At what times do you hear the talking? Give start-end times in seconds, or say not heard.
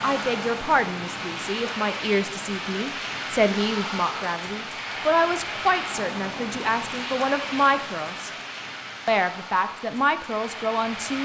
0.0-8.3, 9.1-11.2.